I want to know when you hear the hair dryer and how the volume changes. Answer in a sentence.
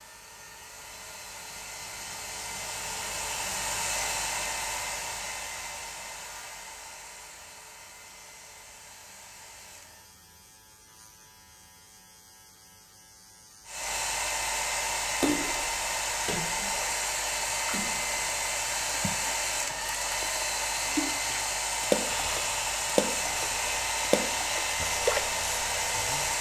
You can hear the hair dryer from 0.0 to 10.2 s, getting louder then quieter; and from 13.7 to 26.3 s, at a steady volume.